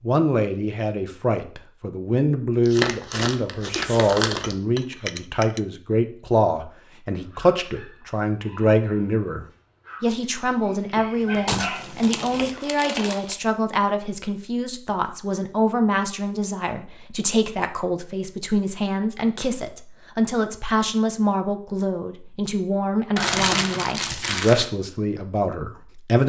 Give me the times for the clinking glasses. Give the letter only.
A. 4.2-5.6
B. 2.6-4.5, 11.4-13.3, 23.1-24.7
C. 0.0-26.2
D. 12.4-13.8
A.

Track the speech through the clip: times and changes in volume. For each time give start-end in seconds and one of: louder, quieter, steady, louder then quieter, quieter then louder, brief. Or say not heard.
0.0-26.2 steady.